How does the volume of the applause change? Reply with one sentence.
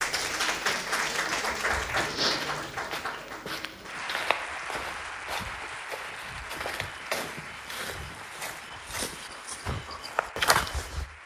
The volume of the applause goes down.